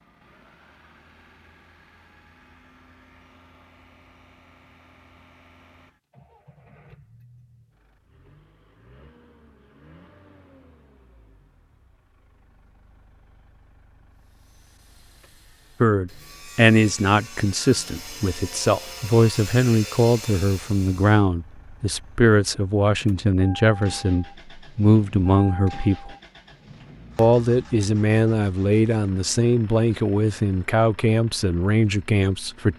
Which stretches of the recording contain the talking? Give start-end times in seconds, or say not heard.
15.8-26.1, 27.1-32.7.